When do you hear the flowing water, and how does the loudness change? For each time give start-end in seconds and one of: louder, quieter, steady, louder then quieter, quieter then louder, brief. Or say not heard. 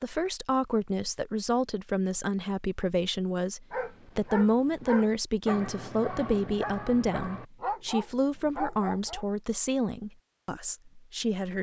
not heard.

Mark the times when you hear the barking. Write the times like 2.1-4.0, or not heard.
3.7-9.2.